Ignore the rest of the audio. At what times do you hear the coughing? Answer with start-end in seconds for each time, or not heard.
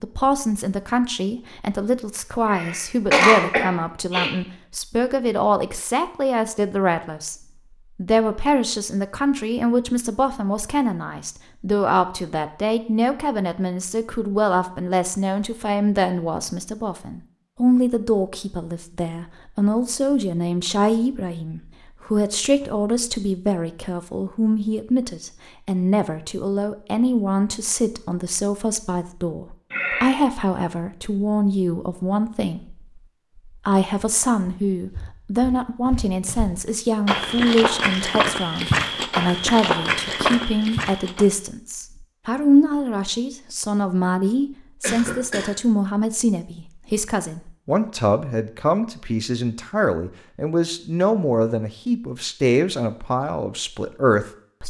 2.5-4.3, 29.7-30.2, 44.8-45.5.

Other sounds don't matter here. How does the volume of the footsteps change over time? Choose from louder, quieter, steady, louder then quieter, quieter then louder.
louder.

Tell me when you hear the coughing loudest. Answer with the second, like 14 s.
3 s.